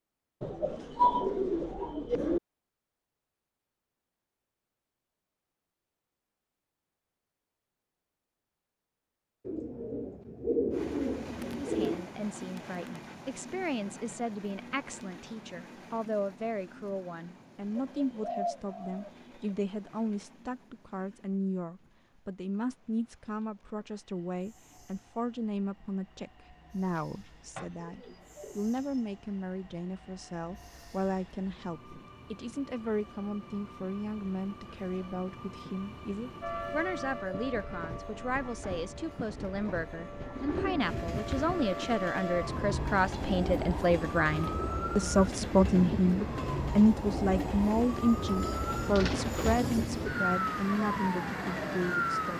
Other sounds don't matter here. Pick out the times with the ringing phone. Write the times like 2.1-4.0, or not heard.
not heard.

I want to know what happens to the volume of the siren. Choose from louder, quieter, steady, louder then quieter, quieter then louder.
louder.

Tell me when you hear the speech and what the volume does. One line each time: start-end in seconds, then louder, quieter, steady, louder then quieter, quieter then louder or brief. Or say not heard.
11.6-52.3 louder.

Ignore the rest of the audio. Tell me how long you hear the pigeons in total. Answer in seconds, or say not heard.
12 s.